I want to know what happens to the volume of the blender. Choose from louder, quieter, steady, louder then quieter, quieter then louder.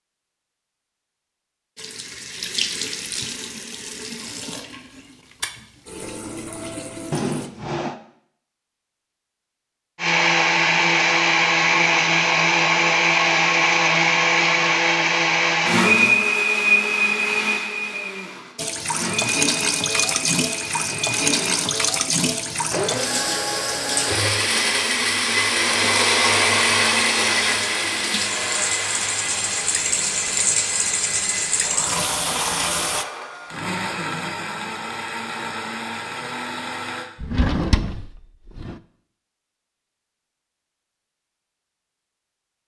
quieter.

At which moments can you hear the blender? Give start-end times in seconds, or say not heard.
9.9-37.1.